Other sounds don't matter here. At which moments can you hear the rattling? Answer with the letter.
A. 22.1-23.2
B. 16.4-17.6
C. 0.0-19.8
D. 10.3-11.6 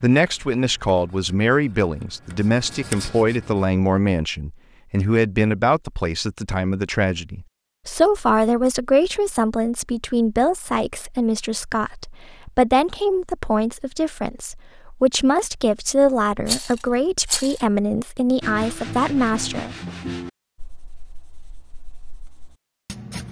B.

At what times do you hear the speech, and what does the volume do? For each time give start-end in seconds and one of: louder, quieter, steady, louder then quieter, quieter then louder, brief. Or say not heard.
0.0-19.8 steady.